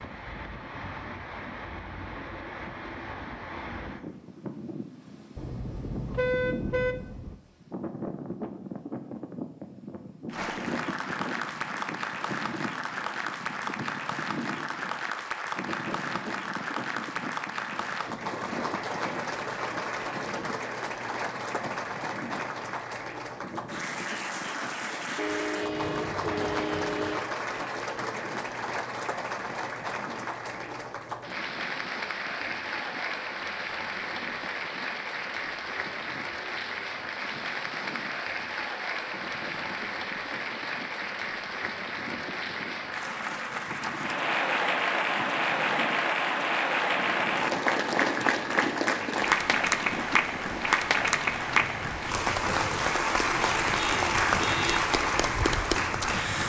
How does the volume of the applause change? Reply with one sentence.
The loudness of the applause goes up.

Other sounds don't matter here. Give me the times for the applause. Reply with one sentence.
You can hear the applause from 10.2 to 56.4 s.